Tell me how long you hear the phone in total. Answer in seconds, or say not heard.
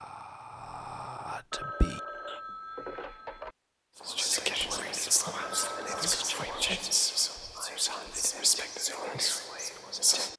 3 s.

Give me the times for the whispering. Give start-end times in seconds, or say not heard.
0.0-2.4, 4.0-10.3.